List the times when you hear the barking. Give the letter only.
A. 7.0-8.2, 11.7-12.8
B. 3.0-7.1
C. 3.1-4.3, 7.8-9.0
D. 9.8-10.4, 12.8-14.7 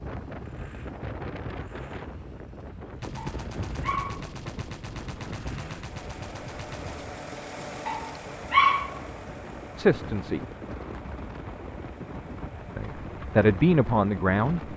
C.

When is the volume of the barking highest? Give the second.
9 s.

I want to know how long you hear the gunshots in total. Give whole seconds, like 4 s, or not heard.
4 s.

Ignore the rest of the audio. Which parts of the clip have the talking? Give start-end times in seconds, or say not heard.
9.8-10.4, 12.8-14.7.